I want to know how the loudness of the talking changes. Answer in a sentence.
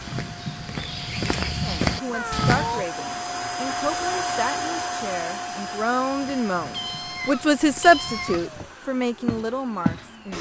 The volume of the talking goes up, then down.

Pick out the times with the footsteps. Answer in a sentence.
The footsteps can be heard from 0.0 to 2.9 s and from 6.0 to 10.1 s.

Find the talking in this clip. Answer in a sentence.
The talking can be heard from 1.6 to 10.3 s.